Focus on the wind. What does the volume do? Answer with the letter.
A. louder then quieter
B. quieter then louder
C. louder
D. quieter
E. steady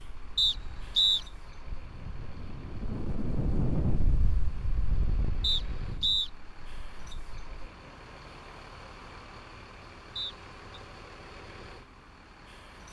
A.